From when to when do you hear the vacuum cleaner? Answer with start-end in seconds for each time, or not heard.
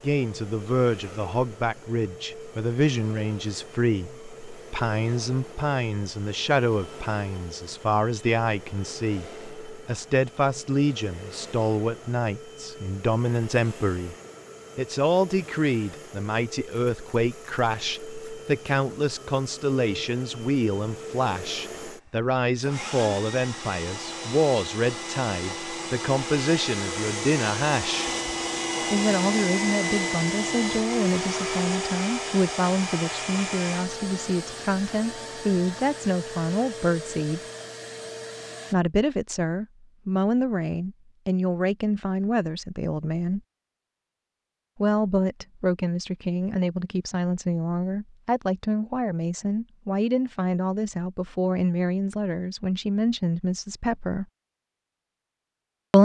0.0-38.8.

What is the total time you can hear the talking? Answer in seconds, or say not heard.
50 s.